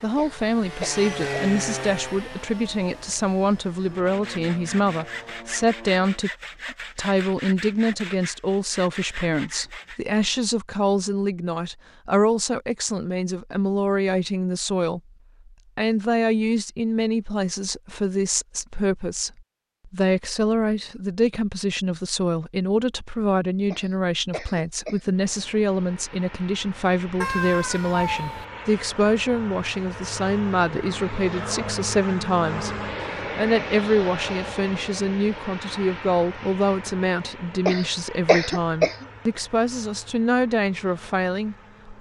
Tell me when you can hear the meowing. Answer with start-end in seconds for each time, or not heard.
27.2-28.4.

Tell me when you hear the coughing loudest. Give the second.
38 s.